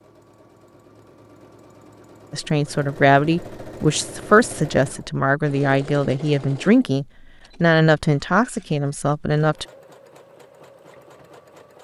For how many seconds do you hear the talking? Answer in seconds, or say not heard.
7 s.